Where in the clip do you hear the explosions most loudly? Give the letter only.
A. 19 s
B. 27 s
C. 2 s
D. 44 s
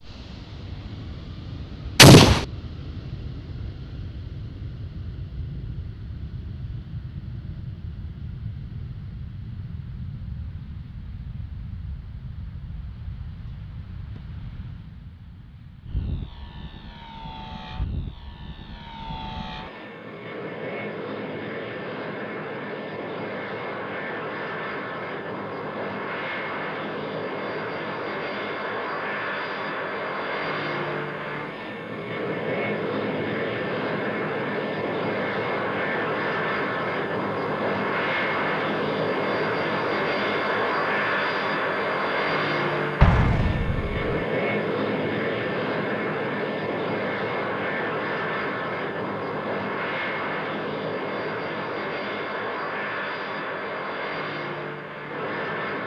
C.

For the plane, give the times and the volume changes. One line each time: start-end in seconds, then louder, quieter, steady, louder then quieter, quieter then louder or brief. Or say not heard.
0.0-55.8 louder.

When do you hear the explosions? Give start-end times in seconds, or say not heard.
1.9-2.5, 43.0-44.1.